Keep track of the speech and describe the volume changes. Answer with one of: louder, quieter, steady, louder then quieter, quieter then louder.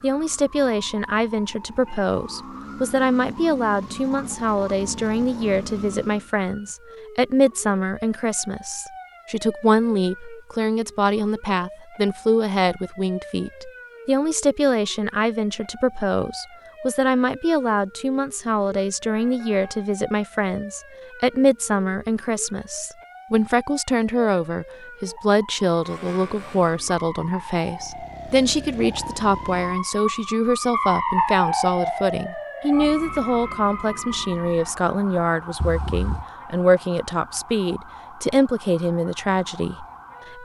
steady.